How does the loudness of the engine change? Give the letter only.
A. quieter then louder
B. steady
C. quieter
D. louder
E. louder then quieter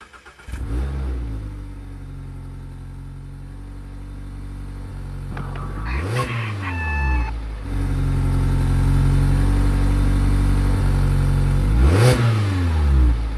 D.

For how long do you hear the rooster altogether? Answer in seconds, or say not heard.
2 s.